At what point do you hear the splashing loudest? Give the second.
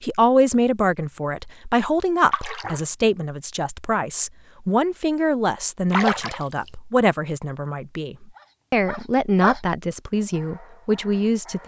6 s.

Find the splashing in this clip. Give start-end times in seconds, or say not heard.
2.3-2.8, 5.9-6.7.